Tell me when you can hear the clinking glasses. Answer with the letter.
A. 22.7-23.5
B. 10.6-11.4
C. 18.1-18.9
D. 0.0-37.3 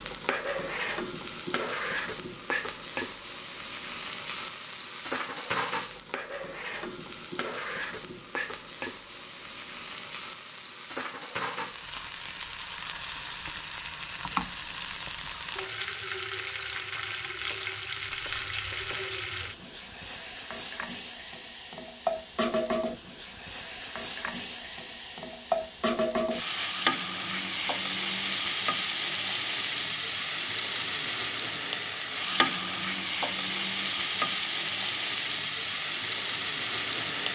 C.